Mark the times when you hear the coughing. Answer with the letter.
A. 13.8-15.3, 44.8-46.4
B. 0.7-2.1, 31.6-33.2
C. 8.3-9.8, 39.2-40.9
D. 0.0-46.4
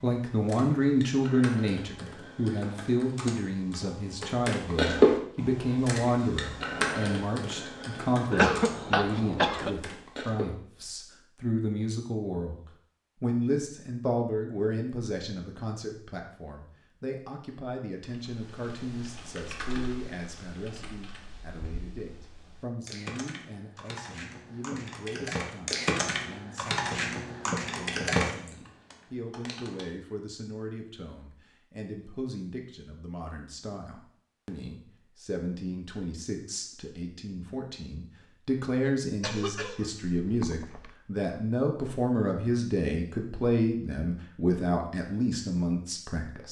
C.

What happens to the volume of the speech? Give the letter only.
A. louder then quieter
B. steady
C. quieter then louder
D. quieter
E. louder
C.